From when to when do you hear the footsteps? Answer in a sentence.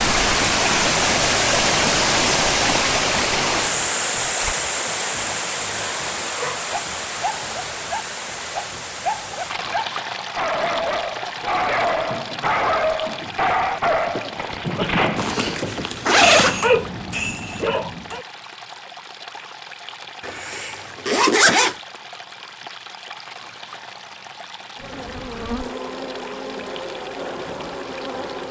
The footsteps can't be heard in this clip.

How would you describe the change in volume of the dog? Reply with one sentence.
The volume of the dog goes up.